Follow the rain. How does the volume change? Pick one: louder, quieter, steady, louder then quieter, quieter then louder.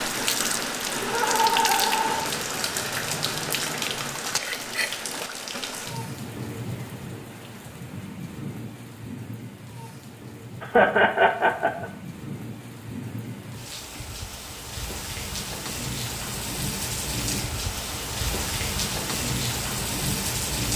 quieter then louder.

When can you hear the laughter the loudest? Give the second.
11 s.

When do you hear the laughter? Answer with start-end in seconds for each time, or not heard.
1.0-2.2, 10.6-11.9.